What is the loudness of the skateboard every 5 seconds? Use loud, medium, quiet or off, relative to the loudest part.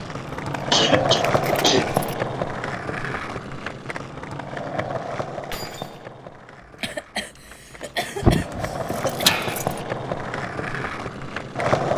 loud, medium, loud.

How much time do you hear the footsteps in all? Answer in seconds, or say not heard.
not heard.